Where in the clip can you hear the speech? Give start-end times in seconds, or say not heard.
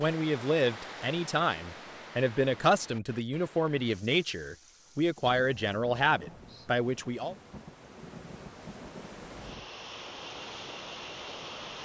0.0-7.3.